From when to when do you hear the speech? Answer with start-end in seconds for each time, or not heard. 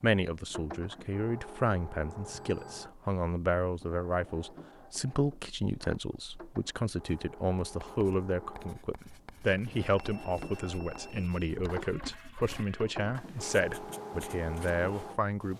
0.0-15.5.